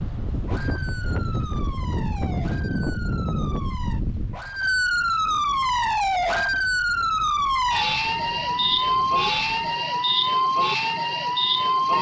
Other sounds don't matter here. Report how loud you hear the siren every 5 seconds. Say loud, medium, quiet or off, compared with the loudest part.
medium, loud, loud.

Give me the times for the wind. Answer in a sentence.
You can hear the wind from 0.0 to 9.6 s.